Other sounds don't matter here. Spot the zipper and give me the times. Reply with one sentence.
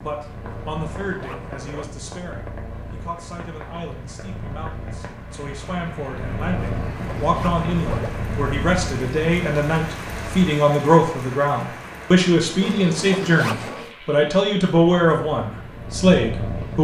You can hear the zipper from 0.4 to 1.9 s, from 6.5 to 8.2 s and from 12.6 to 13.9 s.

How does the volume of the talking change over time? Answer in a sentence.
The volume of the talking goes up.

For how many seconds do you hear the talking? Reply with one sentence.
The talking can be heard for 17 seconds in total.